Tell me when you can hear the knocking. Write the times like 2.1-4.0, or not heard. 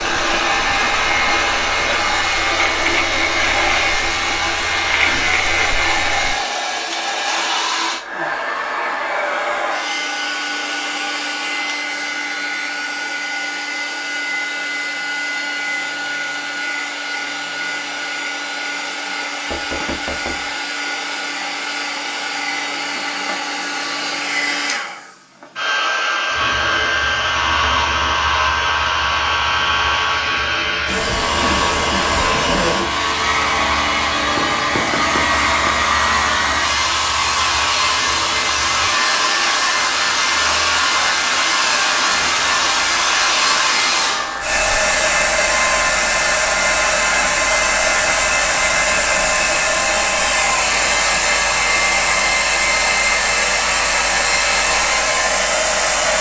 19.5-20.5, 34.4-35.8.